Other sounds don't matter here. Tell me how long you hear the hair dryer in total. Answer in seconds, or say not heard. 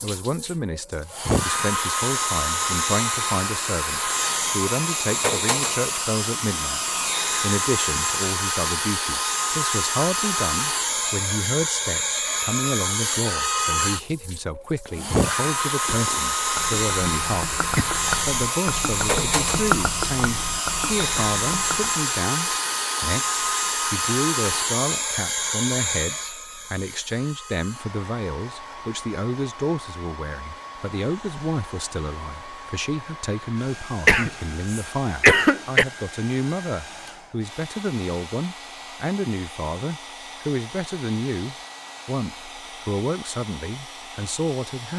45 s.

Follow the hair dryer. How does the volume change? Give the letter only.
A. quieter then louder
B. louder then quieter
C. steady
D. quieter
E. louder
D.